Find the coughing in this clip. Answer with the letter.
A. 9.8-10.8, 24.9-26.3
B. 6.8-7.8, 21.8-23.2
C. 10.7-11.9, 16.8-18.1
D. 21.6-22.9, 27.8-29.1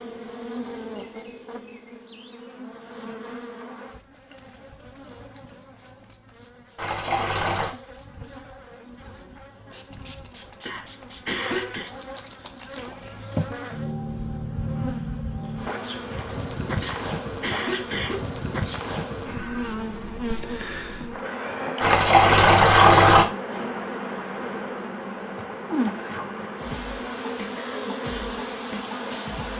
C.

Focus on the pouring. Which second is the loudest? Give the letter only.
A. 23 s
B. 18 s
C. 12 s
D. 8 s
A.